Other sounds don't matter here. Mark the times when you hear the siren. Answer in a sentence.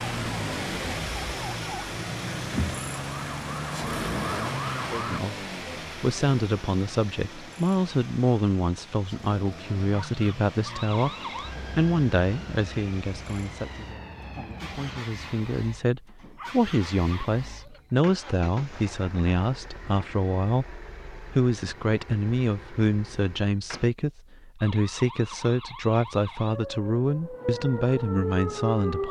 The siren can be heard from 0.0 to 5.2 s, from 10.8 to 15.1 s and from 24.6 to 29.0 s.